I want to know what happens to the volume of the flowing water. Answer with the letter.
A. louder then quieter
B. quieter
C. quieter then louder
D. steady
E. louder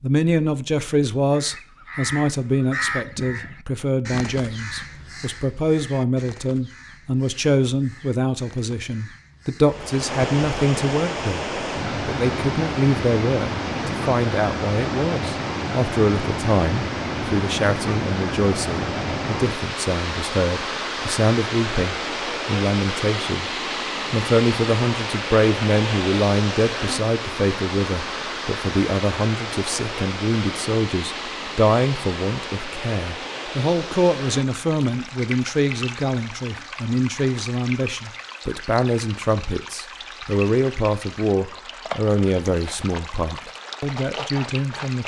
B.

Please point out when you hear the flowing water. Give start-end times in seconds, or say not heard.
9.7-45.0.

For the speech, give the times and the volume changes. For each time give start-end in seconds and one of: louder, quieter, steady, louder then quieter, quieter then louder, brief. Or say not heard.
0.0-23.5 steady
24.1-45.0 steady.